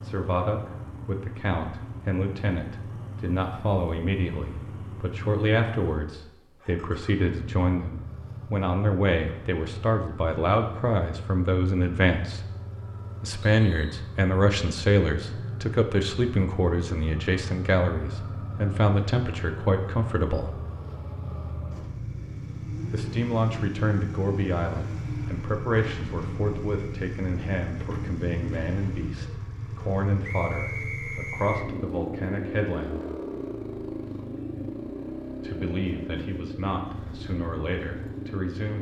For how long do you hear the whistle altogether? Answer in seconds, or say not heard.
2 s.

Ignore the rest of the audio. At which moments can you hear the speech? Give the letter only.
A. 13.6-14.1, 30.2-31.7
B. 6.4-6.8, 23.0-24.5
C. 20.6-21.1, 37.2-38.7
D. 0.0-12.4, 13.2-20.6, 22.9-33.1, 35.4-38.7
D.